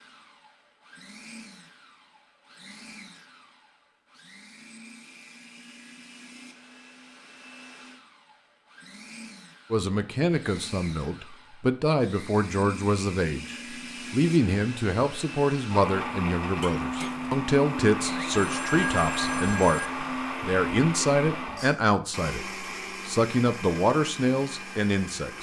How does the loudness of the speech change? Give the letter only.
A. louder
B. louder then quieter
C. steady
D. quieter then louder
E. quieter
C.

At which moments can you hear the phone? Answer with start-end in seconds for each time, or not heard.
18.2-19.9.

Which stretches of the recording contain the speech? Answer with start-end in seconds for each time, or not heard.
9.7-25.3.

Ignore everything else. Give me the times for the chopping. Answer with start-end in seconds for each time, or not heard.
not heard.